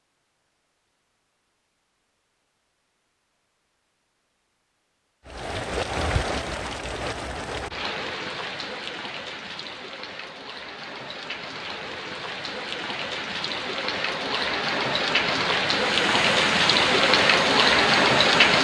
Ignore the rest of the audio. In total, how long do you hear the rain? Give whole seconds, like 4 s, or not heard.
13 s.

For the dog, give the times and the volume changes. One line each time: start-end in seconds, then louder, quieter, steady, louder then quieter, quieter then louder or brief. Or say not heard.
not heard.